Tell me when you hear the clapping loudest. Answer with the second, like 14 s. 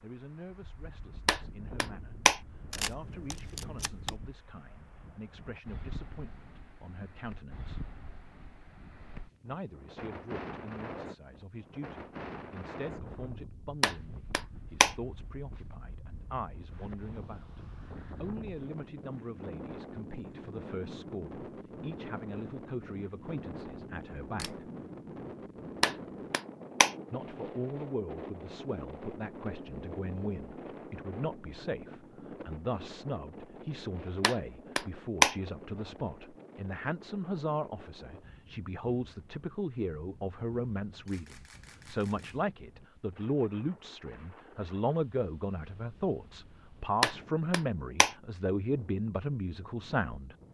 35 s.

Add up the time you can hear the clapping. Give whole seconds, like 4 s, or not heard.
6 s.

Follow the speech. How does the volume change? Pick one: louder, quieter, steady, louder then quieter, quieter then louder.
louder.